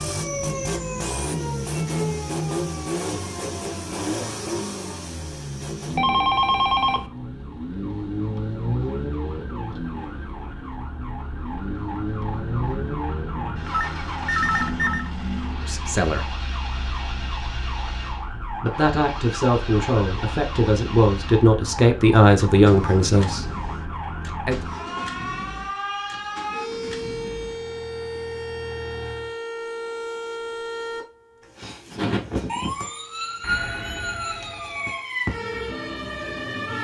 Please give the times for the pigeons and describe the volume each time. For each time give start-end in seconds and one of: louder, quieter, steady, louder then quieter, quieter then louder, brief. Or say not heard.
not heard.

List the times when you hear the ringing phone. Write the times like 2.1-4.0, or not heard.
6.0-7.1, 13.7-15.1, 33.4-35.0.